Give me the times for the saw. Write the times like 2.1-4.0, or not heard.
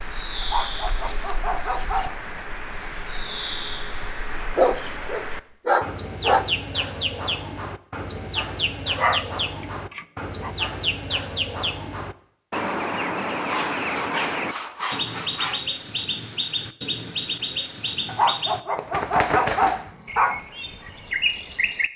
13.6-15.6.